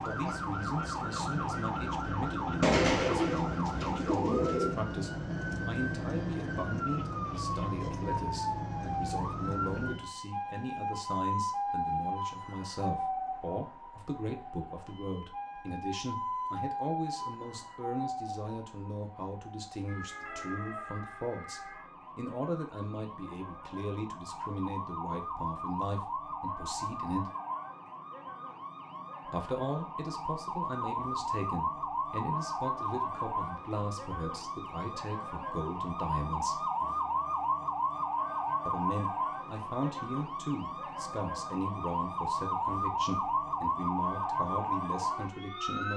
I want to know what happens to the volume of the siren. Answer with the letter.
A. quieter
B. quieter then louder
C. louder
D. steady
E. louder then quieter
B.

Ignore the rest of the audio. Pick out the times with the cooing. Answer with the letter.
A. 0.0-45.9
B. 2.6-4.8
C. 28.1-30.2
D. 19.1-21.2
B.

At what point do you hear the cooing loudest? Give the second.
3 s.